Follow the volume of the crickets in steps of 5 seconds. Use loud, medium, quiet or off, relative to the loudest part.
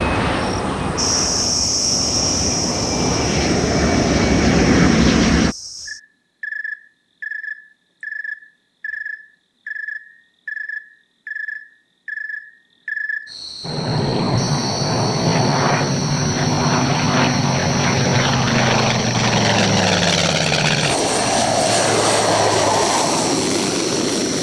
loud, medium, medium, medium, medium.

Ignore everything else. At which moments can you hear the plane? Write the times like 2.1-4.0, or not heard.
0.0-5.5, 13.6-24.3.